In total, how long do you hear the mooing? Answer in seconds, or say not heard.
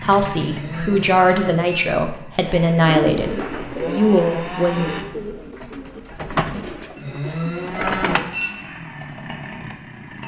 3 s.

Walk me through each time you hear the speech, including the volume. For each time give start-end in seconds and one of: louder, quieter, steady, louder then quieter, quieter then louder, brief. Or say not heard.
0.0-4.9 steady.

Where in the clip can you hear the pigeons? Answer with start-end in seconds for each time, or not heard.
2.9-8.2.